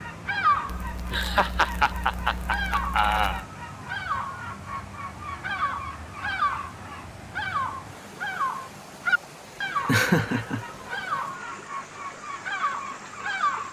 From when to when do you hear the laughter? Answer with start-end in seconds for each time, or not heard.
0.7-3.5, 9.8-10.7.